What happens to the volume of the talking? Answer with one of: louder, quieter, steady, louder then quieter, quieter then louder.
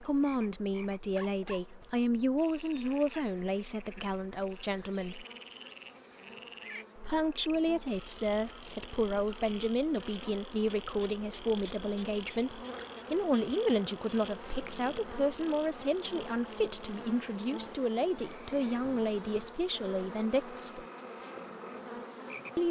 steady.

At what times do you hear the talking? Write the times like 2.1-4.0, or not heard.
0.0-5.2, 7.0-20.9.